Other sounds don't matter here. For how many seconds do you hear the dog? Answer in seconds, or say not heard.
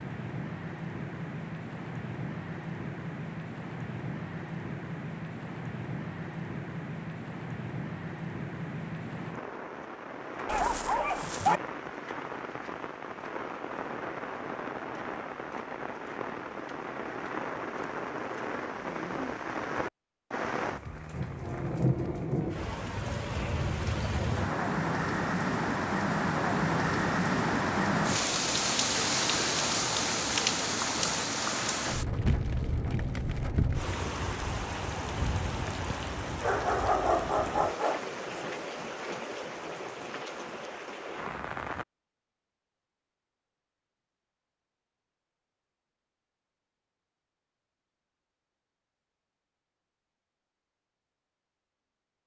3 s.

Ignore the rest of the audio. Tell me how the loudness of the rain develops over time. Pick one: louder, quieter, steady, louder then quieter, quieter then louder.
louder then quieter.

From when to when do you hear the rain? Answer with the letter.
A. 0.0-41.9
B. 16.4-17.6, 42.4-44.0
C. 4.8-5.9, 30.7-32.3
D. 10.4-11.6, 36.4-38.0
A.